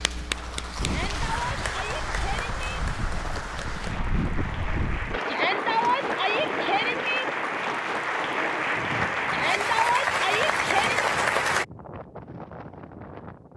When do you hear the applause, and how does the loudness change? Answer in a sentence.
You can hear the applause from 0.0 to 11.7 s, getting louder.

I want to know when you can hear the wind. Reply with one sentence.
The wind can be heard from 0.0 to 13.5 s.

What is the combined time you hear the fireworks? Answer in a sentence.
The fireworks can't be heard in this clip.